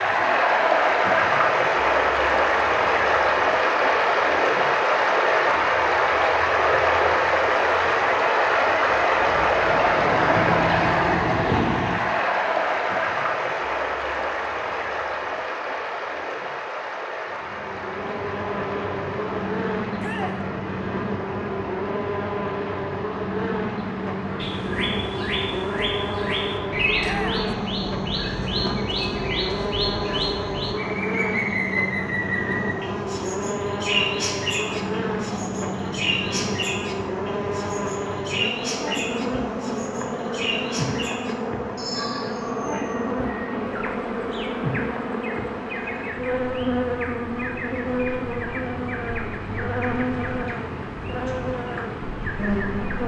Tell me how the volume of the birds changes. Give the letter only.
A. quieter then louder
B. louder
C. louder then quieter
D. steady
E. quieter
E.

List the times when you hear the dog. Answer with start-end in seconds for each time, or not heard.
not heard.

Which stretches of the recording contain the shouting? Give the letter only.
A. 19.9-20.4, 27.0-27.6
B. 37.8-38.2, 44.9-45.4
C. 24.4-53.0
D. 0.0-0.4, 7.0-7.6
A.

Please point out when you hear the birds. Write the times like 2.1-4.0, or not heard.
24.4-53.0.